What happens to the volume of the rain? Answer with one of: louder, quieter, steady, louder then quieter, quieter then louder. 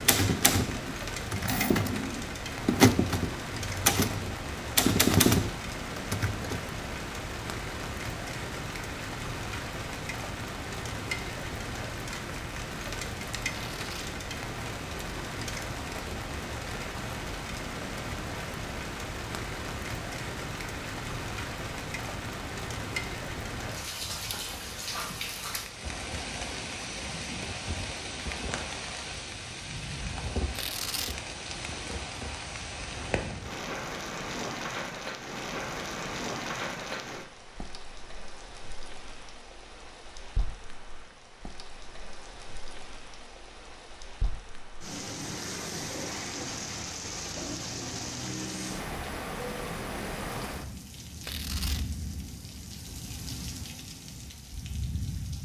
steady.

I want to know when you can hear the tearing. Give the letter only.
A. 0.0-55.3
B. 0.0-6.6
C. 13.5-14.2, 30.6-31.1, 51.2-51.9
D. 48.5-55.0
C.